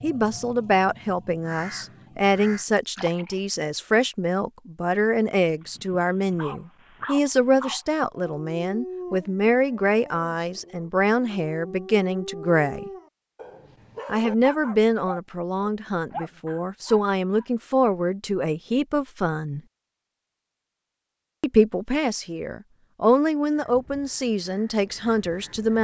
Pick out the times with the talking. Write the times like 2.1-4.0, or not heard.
0.0-12.9, 14.1-19.6, 21.4-25.7.